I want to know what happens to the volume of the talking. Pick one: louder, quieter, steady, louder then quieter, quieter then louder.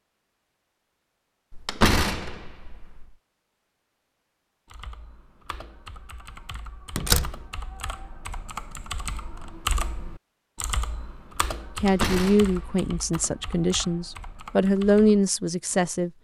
quieter then louder.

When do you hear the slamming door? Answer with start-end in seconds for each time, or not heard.
1.5-3.0, 7.0-7.5, 11.7-12.8.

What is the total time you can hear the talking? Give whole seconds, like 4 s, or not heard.
4 s.